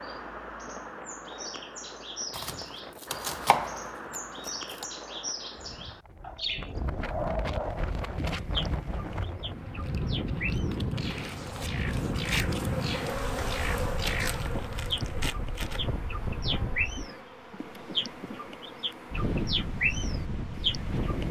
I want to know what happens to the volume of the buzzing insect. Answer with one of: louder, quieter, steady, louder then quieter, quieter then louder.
louder then quieter.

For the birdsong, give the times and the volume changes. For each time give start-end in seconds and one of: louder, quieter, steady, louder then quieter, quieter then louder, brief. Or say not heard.
0.0-21.2 louder.